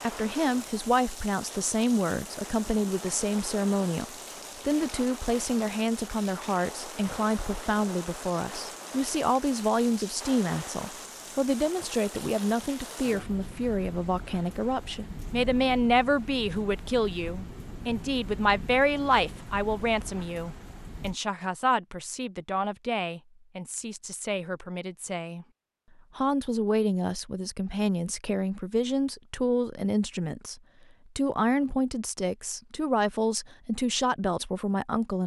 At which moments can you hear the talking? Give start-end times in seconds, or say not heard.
0.0-25.4, 26.1-35.2.